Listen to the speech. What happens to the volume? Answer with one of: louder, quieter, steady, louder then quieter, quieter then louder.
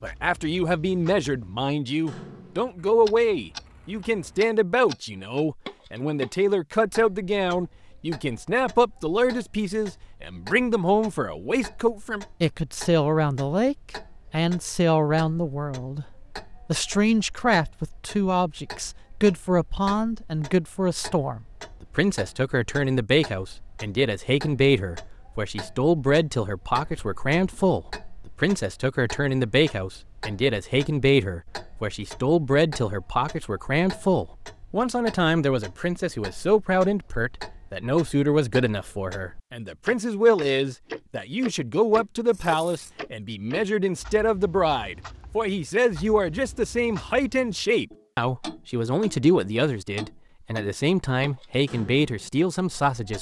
steady.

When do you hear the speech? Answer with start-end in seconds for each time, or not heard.
0.0-16.1, 16.6-53.1.